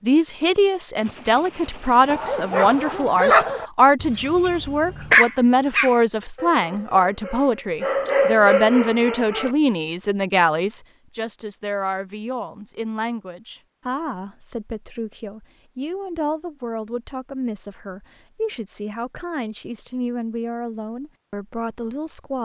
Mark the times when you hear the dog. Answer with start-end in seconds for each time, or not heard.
2.0-9.5.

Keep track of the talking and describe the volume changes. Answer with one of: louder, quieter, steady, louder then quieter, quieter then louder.
quieter.